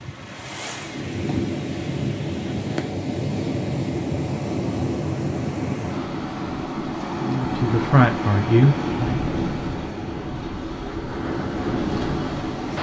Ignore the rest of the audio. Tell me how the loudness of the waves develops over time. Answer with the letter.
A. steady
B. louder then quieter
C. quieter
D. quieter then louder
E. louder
A.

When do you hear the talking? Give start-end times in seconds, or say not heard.
7.2-9.2.